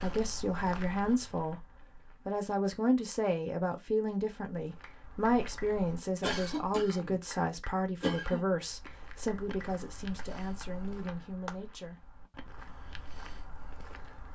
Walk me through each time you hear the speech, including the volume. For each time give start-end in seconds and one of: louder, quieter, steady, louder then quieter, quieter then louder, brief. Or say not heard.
0.0-12.1 quieter.